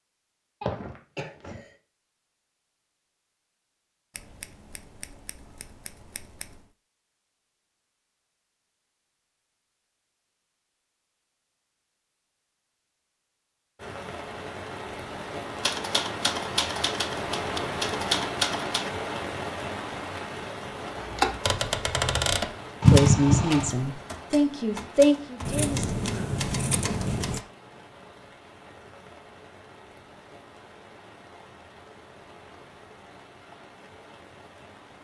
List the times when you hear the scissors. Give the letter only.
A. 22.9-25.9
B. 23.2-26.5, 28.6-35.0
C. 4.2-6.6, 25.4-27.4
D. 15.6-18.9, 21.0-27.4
C.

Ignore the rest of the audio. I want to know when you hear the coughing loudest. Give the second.
23 s.